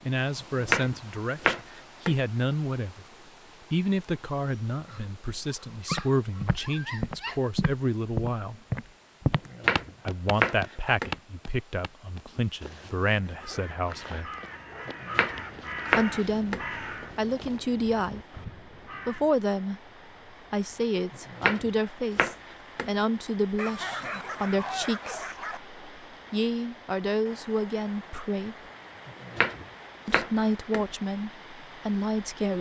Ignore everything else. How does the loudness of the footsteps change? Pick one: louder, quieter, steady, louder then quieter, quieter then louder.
quieter.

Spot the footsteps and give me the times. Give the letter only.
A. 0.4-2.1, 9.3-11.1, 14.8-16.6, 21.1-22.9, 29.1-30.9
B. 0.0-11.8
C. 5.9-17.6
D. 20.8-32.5
C.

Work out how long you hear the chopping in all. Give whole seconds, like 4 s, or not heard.
9 s.